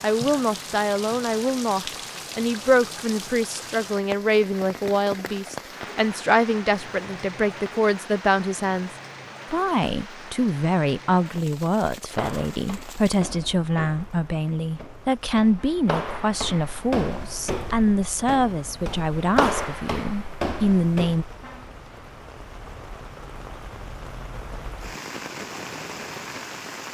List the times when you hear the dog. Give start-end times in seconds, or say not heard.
not heard.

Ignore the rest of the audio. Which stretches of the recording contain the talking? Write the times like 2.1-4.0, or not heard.
0.0-8.9, 9.5-21.2.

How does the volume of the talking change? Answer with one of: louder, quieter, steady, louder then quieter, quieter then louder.
steady.